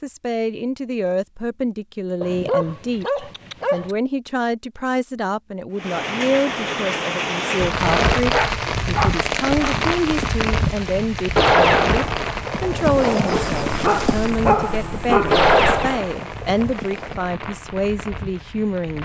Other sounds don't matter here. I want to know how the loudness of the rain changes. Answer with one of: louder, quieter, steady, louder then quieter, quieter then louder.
quieter.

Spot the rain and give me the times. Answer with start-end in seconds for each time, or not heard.
5.8-19.0.